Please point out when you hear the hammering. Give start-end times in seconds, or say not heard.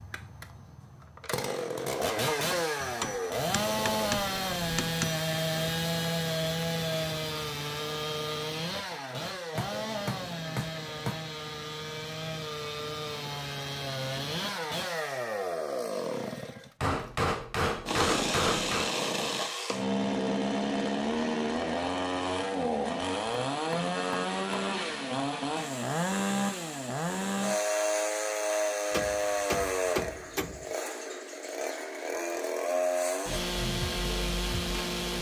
2.8-5.2, 9.6-11.2, 16.8-18.9, 23.6-24.8, 28.9-30.6.